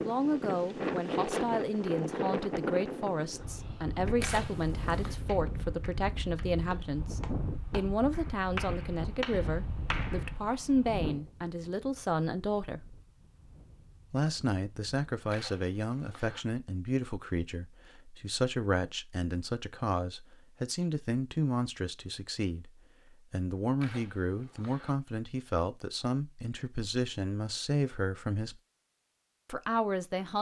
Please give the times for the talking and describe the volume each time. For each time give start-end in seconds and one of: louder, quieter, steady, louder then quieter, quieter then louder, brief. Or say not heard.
0.0-13.0 steady
14.1-28.6 steady
29.4-30.3 brief.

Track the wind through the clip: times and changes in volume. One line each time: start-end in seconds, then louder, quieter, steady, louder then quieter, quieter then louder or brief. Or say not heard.
0.0-15.3 quieter.